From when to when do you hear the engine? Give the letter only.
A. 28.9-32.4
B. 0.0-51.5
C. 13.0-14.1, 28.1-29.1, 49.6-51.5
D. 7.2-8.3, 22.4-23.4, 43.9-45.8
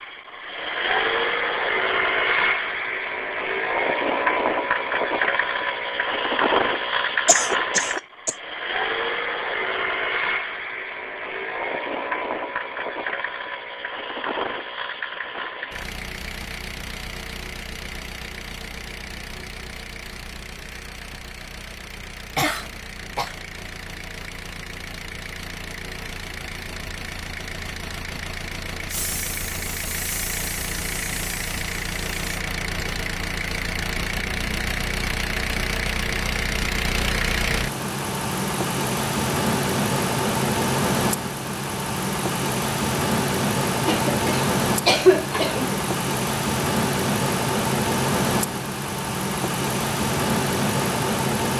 B.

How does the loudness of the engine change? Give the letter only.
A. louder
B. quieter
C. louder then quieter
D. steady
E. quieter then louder
E.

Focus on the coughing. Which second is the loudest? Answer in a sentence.
The loudest moment of the coughing is at 45 seconds.